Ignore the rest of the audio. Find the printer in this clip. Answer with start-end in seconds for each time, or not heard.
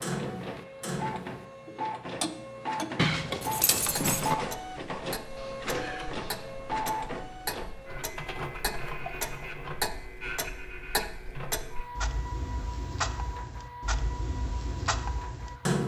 0.0-15.8.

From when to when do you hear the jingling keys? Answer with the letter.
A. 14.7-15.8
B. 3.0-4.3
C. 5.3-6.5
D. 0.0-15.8
B.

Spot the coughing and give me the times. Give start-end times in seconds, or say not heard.
5.3-6.5.